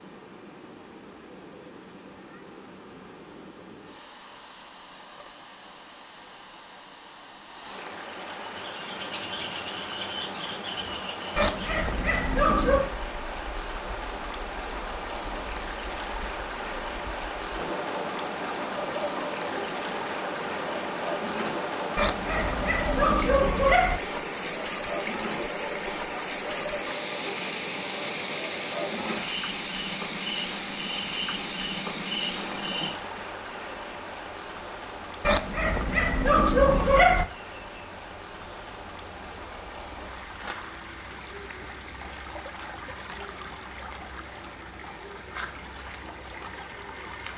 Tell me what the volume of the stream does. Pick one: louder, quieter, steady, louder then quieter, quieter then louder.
louder then quieter.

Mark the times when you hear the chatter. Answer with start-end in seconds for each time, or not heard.
not heard.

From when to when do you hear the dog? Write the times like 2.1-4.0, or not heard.
11.3-12.9, 21.9-24.0, 35.2-37.2.